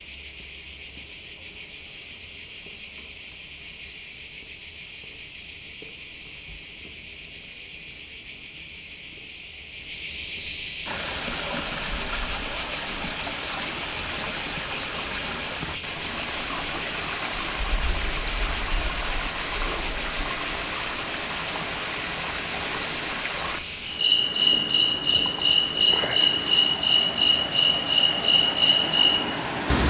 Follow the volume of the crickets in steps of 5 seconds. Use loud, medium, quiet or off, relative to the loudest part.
medium, medium, loud, loud, loud, loud.